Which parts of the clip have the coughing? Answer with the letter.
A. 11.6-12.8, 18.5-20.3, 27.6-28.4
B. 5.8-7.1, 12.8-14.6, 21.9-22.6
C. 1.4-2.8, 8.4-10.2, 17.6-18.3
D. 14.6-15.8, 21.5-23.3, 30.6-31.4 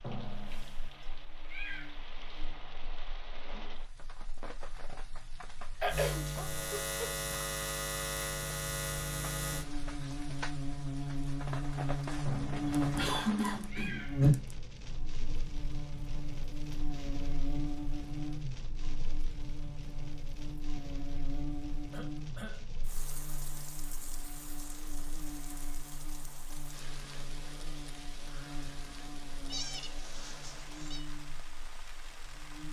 B.